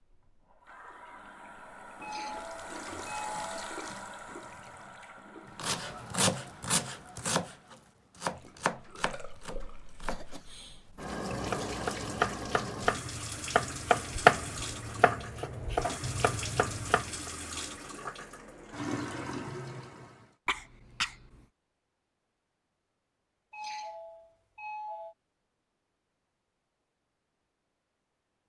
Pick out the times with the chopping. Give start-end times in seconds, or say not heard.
5.5-17.3.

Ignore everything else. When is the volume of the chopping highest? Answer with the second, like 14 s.
14 s.